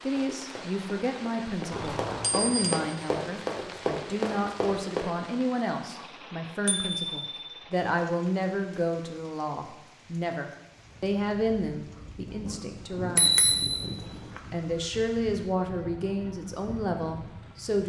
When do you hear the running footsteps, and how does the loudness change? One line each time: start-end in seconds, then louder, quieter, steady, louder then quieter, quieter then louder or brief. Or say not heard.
0.1-5.0 louder.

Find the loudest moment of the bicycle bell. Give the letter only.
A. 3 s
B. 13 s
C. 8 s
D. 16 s
B.